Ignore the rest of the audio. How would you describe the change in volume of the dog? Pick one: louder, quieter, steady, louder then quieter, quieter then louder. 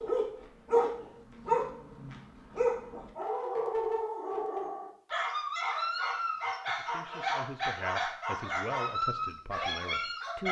steady.